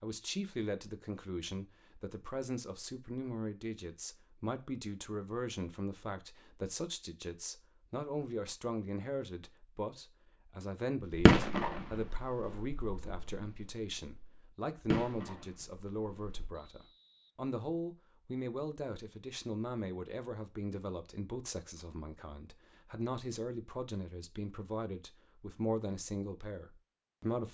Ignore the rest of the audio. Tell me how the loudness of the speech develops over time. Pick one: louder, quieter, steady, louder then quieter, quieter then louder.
steady.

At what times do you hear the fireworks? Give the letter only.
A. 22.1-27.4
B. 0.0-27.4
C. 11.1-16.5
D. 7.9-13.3
C.